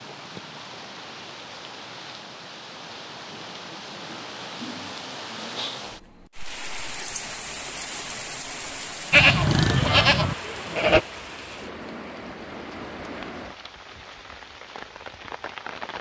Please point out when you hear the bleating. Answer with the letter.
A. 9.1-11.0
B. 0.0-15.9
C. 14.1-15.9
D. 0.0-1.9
A.